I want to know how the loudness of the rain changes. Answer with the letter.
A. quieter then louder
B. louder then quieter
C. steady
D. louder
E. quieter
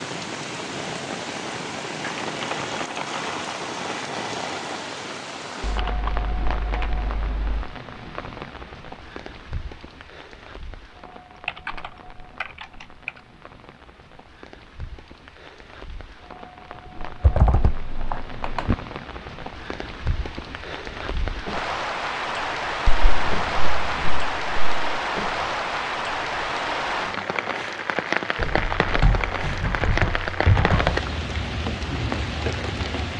A.